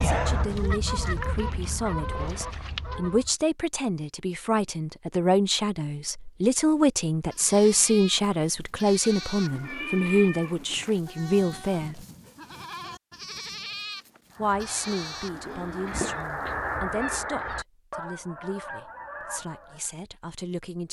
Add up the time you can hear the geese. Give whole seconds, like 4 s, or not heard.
9 s.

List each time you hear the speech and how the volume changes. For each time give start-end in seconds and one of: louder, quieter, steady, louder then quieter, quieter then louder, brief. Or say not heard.
0.0-12.1 louder
14.3-20.8 quieter.